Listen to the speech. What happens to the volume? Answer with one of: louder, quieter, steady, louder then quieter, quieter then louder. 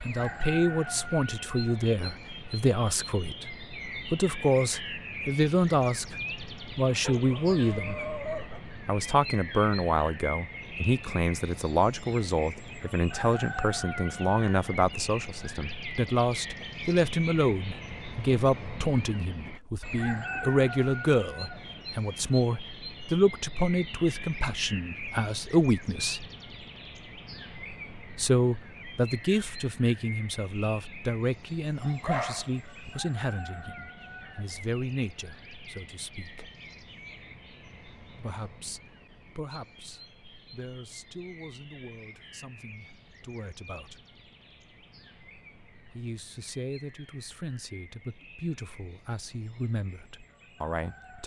quieter.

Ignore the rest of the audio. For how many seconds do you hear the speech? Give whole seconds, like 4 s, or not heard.
45 s.